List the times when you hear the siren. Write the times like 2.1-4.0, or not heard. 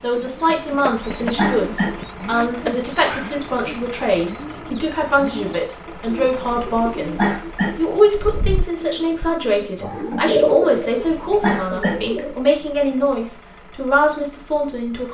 not heard.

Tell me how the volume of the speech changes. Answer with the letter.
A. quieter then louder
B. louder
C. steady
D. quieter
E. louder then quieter
C.